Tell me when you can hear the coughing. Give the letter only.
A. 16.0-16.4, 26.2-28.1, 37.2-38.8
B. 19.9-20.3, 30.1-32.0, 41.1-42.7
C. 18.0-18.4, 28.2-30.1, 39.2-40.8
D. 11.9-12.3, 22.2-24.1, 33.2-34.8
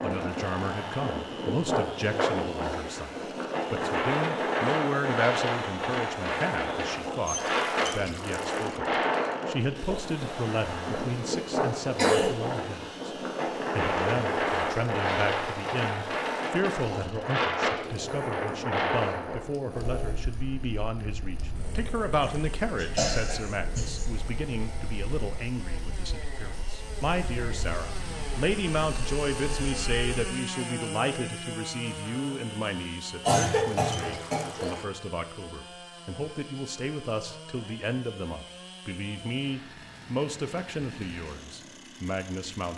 D.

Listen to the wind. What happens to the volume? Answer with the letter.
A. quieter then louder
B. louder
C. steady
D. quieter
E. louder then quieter
D.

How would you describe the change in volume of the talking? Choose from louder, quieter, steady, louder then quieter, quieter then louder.
steady.